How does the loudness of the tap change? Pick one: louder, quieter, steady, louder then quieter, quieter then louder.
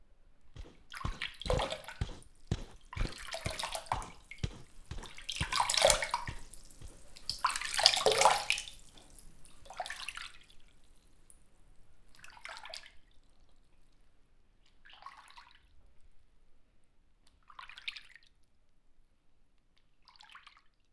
louder then quieter.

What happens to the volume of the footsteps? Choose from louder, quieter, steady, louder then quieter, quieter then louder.
quieter.